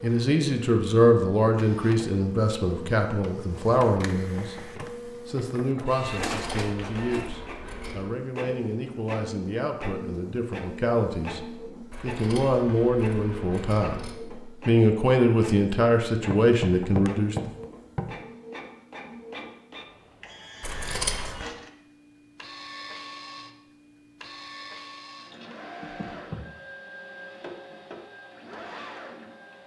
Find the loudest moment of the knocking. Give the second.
17 s.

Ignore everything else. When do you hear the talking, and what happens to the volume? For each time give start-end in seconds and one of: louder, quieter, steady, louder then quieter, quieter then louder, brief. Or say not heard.
0.0-17.5 quieter then louder.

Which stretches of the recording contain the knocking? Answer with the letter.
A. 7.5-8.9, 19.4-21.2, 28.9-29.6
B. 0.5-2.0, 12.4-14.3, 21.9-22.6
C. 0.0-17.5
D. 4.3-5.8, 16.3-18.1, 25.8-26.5
D.